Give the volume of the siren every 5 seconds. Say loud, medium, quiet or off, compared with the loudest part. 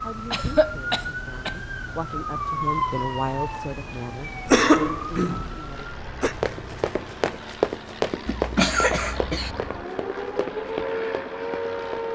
loud, medium, loud.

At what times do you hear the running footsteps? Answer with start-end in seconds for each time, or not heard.
6.4-12.1.